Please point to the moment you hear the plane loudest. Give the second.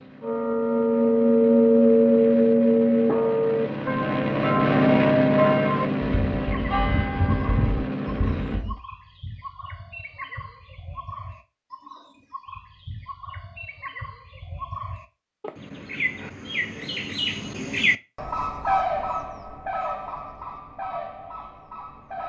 5 s.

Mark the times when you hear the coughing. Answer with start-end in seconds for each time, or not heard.
not heard.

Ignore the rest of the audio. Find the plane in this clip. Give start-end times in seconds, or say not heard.
0.0-8.7.